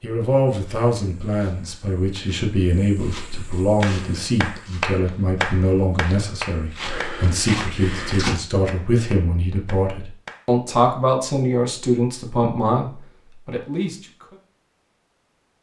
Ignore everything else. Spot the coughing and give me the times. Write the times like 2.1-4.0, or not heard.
not heard.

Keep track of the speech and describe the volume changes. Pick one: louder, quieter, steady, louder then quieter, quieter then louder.
steady.